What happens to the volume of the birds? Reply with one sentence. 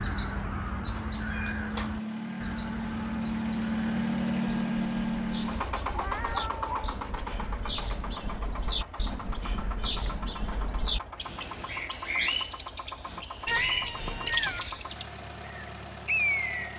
The loudness of the birds goes down, then up.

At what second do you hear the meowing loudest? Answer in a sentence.
The loudest moment of the meowing is at 14 seconds.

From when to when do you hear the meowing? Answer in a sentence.
You can hear the meowing from 0.9 to 1.9 s, from 5.9 to 7.0 s and from 13.4 to 14.8 s.